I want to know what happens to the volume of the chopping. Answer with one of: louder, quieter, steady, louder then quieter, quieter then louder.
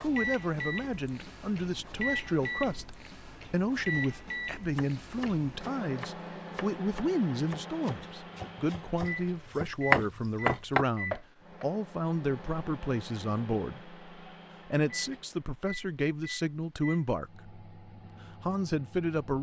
louder.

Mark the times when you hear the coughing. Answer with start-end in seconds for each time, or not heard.
not heard.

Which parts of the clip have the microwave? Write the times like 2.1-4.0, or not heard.
0.0-19.3.